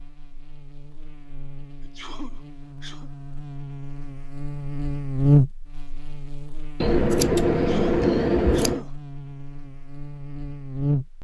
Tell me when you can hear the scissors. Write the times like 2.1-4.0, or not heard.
6.8-8.8.